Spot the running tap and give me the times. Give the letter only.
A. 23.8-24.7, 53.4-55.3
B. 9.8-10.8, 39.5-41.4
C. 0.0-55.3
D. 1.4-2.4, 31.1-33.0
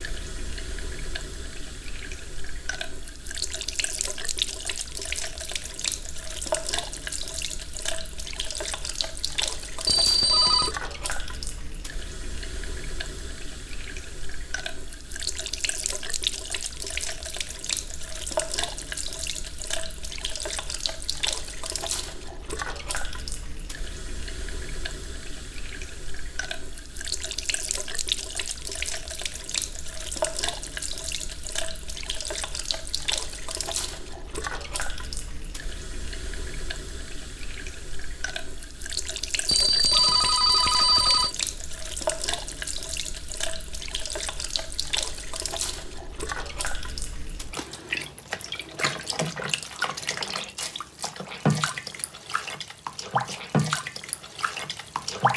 C.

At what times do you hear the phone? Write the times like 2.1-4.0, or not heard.
9.8-10.8, 39.5-41.4.